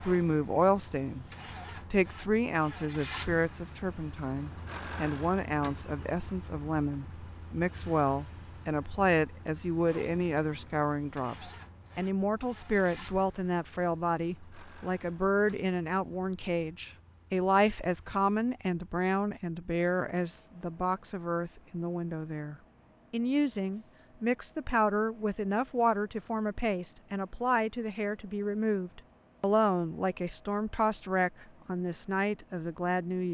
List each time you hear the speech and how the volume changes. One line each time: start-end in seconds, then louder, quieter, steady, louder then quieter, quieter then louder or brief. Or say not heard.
0.0-33.2 steady.